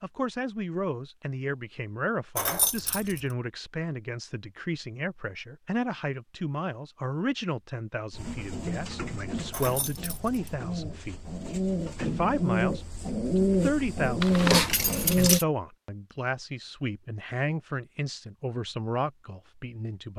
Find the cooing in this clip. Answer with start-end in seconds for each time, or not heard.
8.1-15.4.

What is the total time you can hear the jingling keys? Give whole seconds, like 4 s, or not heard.
3 s.